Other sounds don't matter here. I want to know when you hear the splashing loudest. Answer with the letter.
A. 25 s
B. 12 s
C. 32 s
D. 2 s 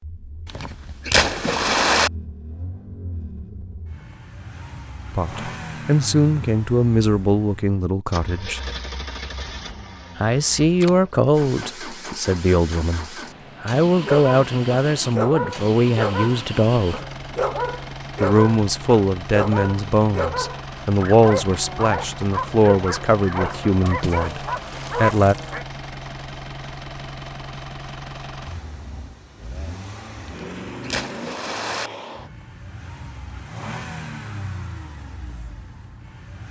D.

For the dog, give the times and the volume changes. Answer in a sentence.
The dog can be heard from 14.0 to 25.6 s, at a steady volume.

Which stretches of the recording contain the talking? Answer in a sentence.
You can hear the talking from 5.2 to 8.6 s, from 10.2 to 17.0 s and from 18.2 to 25.4 s.